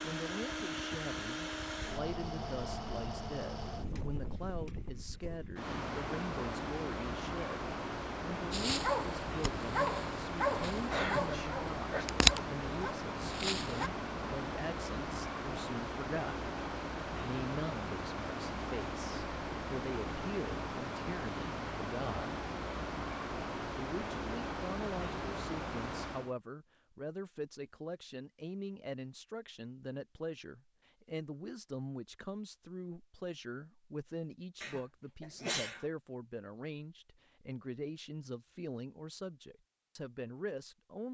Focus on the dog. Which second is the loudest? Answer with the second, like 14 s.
12 s.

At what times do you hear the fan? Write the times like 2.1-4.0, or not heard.
0.0-26.4.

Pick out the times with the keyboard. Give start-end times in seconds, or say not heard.
not heard.